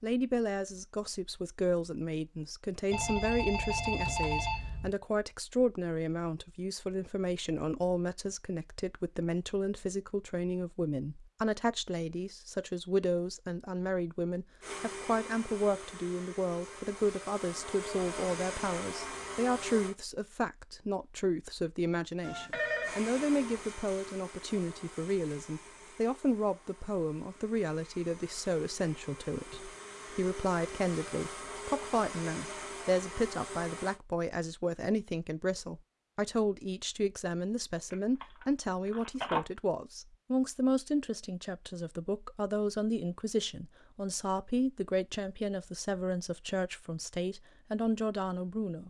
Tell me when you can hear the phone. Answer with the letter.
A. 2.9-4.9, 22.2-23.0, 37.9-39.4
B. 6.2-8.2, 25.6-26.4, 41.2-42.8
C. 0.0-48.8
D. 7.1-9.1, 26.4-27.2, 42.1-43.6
A.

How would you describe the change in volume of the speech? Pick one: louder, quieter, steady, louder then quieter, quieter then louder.
steady.